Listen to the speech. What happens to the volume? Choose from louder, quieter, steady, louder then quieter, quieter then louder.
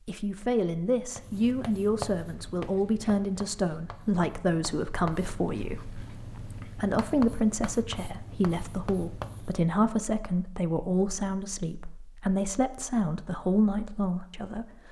steady.